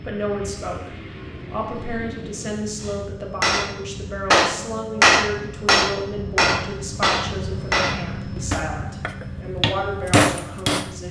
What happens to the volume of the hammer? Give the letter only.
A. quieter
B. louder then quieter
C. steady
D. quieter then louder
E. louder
D.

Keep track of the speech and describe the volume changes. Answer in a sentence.
The volume of the speech stays about the same.